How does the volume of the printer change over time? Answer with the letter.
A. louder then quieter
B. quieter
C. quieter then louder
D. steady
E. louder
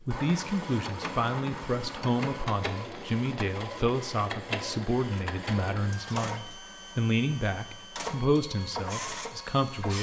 D.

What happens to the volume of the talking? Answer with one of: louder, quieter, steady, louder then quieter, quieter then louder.
steady.